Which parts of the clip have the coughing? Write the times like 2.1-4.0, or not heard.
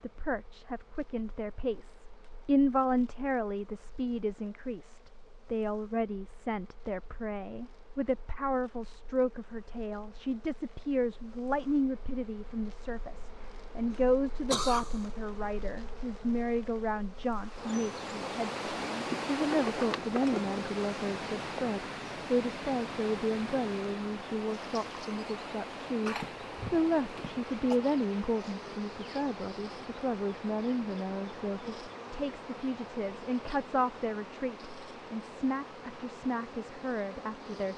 13.9-15.1, 26.0-27.8.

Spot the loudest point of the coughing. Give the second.
15 s.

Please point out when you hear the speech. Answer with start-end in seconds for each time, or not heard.
0.0-37.7.